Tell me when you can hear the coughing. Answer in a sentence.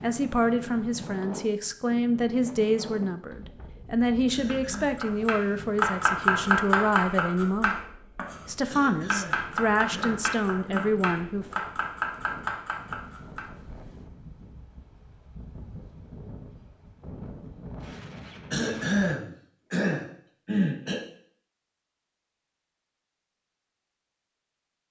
The coughing can be heard from 4.3 to 5.0 s, from 8.7 to 10.9 s and from 18.5 to 21.0 s.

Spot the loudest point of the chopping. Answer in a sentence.
The loudest moment of the chopping is at 6 seconds.